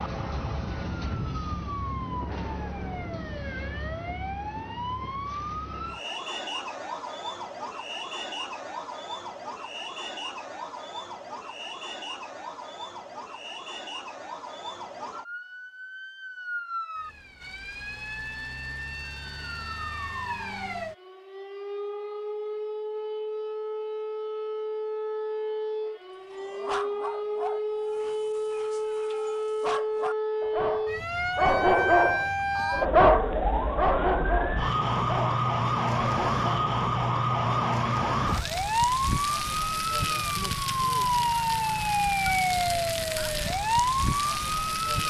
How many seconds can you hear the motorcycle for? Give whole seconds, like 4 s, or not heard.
not heard.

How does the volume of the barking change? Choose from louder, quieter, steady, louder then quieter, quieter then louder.
louder then quieter.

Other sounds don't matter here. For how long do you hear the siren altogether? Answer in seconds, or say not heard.
45 s.